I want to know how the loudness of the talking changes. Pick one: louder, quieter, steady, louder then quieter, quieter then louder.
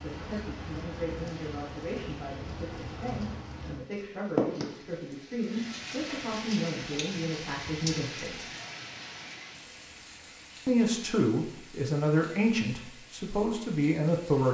louder.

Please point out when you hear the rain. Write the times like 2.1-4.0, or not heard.
0.0-14.4.